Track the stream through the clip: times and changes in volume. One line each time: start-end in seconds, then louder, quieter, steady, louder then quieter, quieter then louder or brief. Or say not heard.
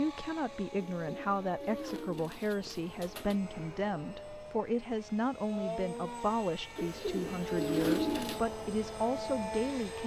not heard.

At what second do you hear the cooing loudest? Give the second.
8 s.